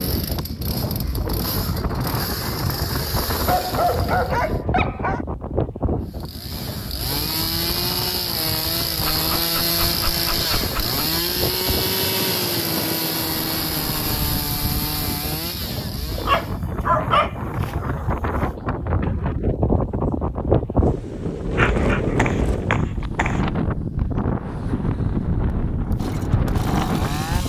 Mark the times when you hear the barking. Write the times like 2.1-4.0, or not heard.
3.5-5.2, 9.1-11.0, 16.1-18.1, 21.6-23.4.